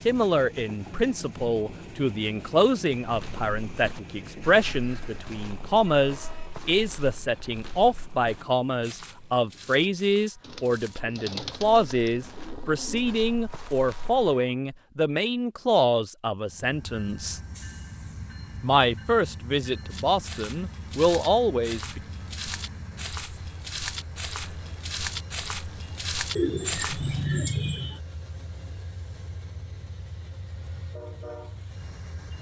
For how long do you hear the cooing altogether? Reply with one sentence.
You can hear the cooing for 4 seconds altogether.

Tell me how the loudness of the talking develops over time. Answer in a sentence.
The loudness of the talking stays about the same.